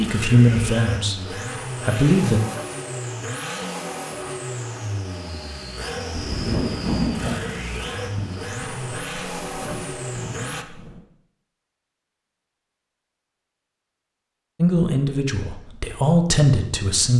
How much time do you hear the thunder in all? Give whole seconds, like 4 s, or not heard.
5 s.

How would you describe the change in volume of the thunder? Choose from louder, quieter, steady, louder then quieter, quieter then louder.
quieter.